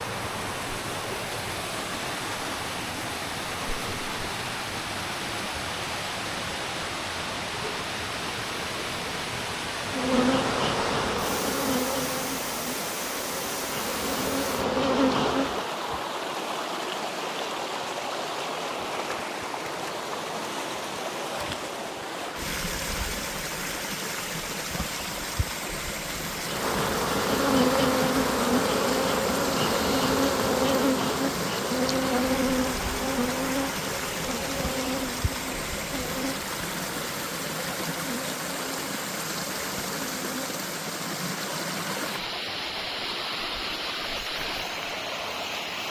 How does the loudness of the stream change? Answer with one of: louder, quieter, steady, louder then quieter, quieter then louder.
steady.